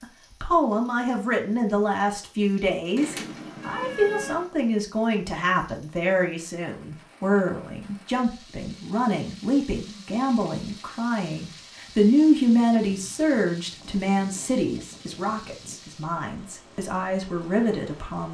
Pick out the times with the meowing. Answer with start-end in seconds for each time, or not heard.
3.0-4.5.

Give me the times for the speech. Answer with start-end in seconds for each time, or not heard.
0.0-18.2.